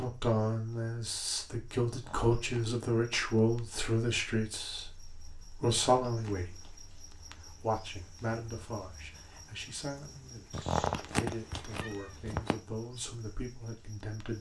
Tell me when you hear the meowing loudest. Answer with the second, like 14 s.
11 s.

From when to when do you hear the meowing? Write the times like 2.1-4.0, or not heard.
1.9-2.7, 5.6-6.8, 10.5-12.6.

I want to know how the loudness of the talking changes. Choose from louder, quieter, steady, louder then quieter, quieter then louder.
quieter.